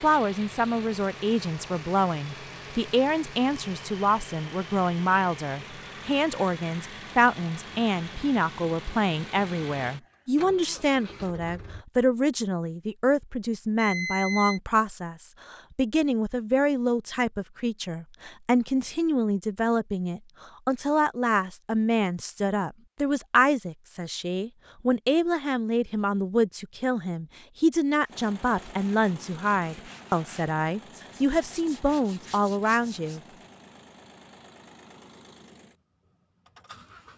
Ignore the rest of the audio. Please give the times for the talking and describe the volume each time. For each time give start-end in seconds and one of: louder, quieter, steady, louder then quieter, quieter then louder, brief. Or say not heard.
0.0-33.2 steady.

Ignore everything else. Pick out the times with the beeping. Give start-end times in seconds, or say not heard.
13.8-14.6.